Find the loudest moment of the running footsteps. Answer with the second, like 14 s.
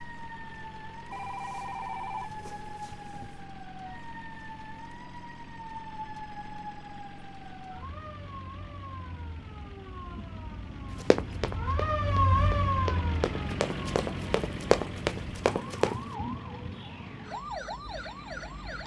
15 s.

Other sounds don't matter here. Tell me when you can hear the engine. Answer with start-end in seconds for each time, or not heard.
0.0-18.8.